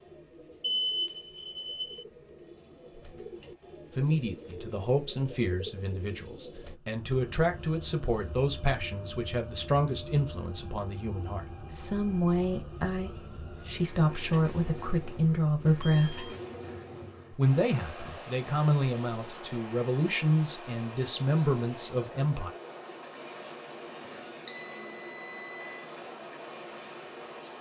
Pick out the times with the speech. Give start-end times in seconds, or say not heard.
4.0-16.3, 17.3-22.5.